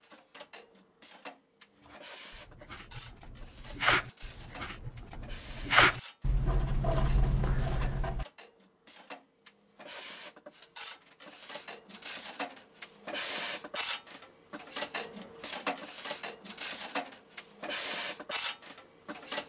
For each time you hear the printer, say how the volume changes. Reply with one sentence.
The printer can be heard from 0.0 to 19.4 s, getting louder.